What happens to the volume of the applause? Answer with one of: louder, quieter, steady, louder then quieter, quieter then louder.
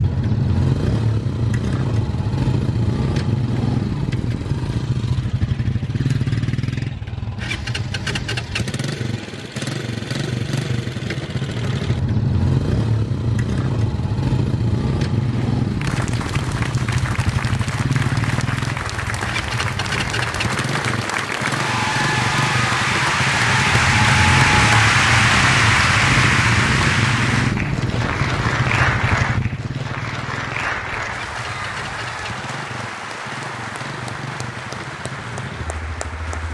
louder then quieter.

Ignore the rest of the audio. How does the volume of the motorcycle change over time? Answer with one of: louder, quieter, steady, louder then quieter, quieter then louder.
quieter.